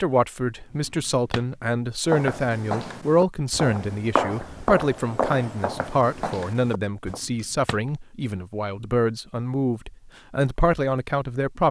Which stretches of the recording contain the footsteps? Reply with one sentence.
The footsteps can be heard from 2.0 to 7.2 s.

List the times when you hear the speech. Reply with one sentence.
You can hear the speech from 0.0 to 11.6 s.